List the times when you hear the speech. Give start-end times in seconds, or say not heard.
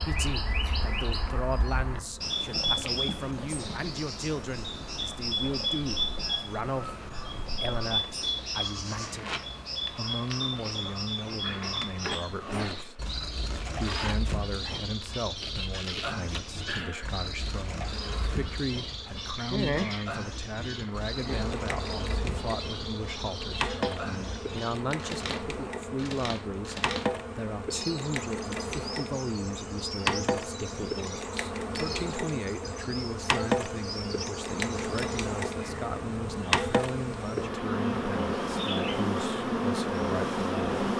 0.0-40.7.